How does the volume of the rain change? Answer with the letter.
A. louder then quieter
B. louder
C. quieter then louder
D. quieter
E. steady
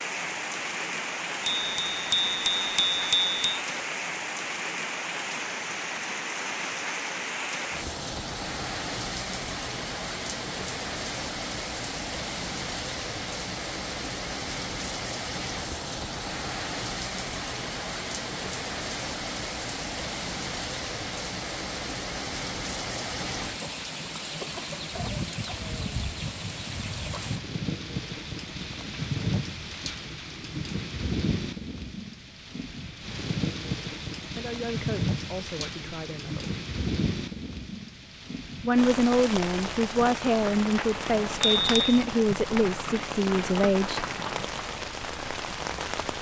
E.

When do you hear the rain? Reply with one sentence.
The rain can be heard from 0.0 to 46.1 s.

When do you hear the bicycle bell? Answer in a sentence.
The bicycle bell can be heard from 1.4 to 3.4 s and from 41.4 to 42.0 s.